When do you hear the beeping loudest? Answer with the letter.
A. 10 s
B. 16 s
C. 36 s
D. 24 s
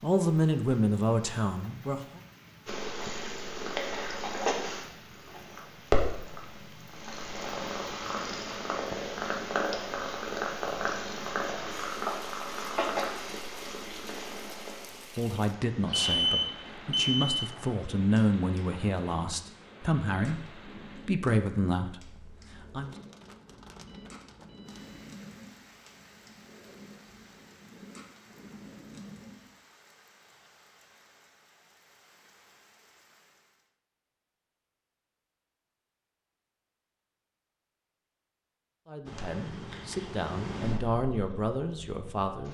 B.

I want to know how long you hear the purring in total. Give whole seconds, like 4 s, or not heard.
30 s.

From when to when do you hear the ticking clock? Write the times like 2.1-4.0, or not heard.
not heard.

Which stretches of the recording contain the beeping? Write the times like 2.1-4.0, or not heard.
15.9-17.4, 23.4-25.1.